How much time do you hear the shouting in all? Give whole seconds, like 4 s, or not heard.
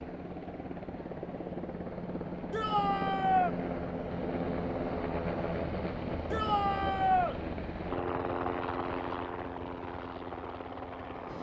2 s.